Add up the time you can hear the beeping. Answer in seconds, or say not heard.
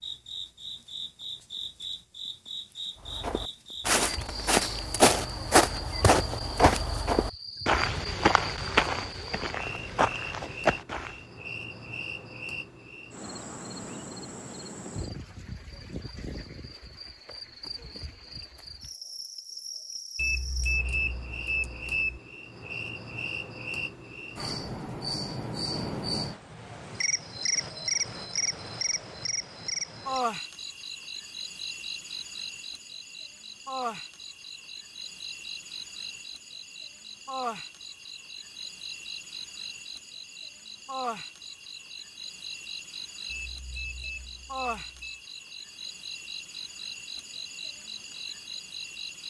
4 s.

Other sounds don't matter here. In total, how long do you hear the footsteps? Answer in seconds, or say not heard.
8 s.